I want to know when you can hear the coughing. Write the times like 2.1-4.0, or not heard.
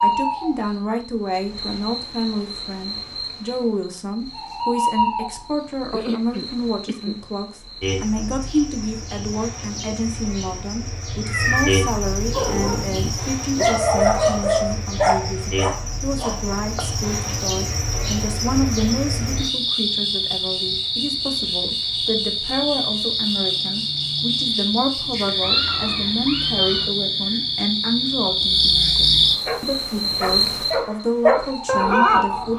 5.9-7.2.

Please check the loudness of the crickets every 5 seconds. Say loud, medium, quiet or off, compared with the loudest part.
medium, medium, medium, medium, loud, loud, loud.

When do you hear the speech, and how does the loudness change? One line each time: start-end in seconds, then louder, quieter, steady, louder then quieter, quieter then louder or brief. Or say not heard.
0.0-32.5 steady.